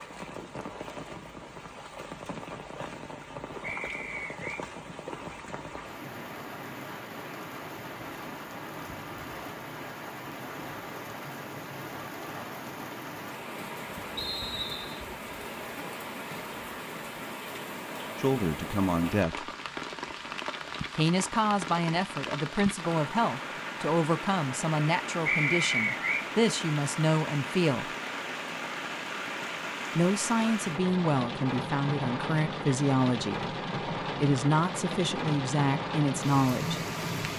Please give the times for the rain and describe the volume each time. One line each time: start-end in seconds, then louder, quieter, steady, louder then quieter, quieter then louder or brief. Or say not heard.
0.0-37.3 louder.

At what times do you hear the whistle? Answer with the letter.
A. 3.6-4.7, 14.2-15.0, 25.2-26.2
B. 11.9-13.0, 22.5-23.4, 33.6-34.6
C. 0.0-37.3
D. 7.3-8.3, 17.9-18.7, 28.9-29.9
A.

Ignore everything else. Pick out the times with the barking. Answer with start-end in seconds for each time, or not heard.
not heard.